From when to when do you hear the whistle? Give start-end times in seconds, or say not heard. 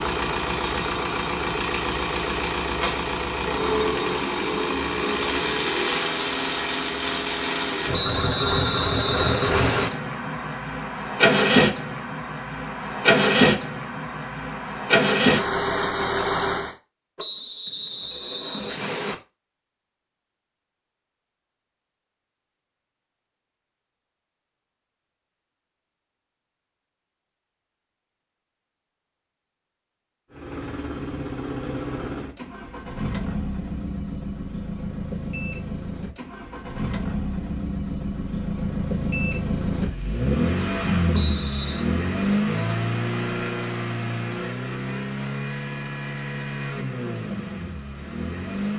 7.9-9.9, 17.1-19.1, 41.1-41.9.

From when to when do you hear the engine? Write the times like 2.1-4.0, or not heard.
0.0-16.8, 30.3-48.7.